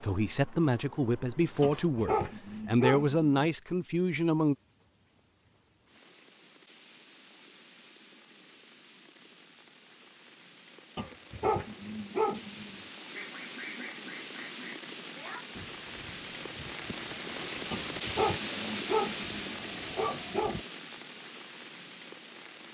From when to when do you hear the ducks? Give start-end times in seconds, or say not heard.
13.1-20.6.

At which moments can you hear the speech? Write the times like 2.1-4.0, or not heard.
0.0-4.5.